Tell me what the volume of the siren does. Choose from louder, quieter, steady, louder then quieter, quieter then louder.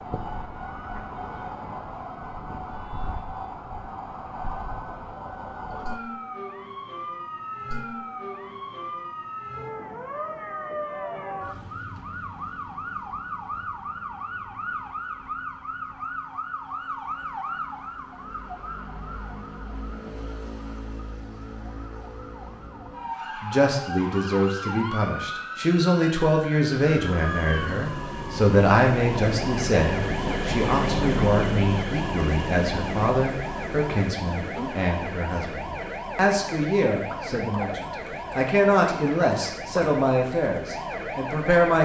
steady.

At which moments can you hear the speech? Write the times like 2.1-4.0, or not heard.
23.4-41.7.